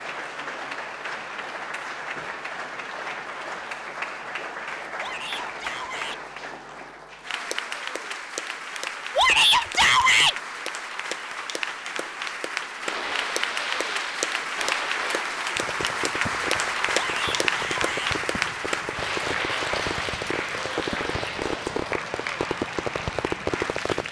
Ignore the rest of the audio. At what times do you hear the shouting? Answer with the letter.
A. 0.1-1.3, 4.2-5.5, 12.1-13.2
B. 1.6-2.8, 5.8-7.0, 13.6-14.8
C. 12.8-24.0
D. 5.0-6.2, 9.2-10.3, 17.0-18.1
D.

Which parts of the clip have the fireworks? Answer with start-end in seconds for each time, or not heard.
12.8-24.0.